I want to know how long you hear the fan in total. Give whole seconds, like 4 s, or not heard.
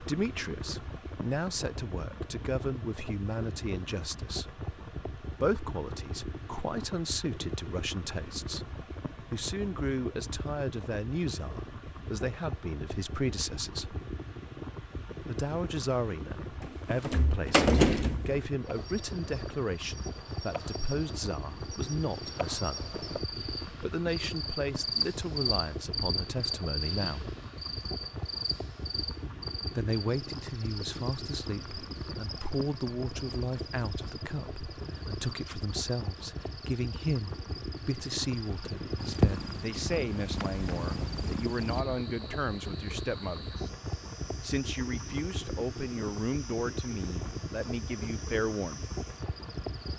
50 s.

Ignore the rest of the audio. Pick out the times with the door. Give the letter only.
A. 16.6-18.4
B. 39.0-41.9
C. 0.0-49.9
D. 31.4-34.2
A.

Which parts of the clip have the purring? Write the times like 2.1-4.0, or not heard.
39.0-41.9.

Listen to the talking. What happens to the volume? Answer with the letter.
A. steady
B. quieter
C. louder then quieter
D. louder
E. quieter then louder
A.